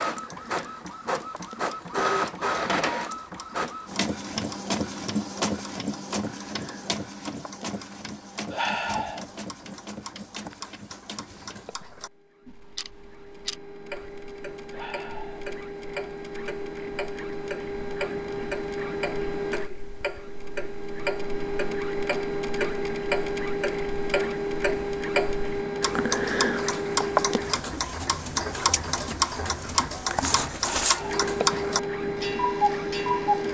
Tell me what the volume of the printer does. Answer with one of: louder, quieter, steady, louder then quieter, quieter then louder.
quieter then louder.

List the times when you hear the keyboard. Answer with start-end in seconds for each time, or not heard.
not heard.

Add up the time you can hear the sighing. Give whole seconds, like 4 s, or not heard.
2 s.